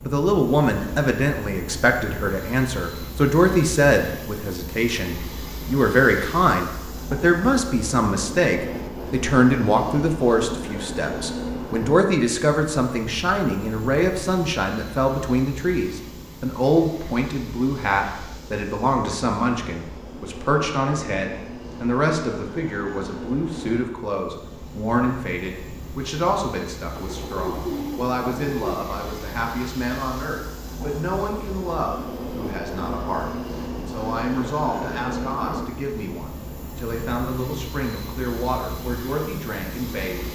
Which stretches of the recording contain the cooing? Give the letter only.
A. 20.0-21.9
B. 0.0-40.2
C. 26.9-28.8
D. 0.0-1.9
C.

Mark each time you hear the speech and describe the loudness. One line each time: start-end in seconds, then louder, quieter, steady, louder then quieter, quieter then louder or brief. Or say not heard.
0.0-40.2 quieter.